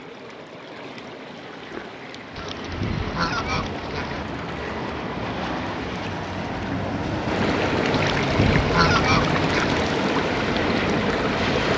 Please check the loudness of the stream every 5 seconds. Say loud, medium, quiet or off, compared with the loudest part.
quiet, loud, loud.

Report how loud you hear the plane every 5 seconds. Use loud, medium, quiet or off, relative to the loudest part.
medium, loud, loud.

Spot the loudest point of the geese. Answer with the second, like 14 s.
9 s.